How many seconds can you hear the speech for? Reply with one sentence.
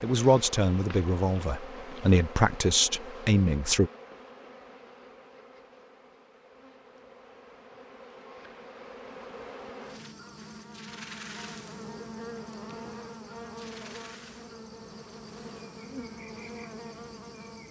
You can hear the speech for 4 seconds altogether.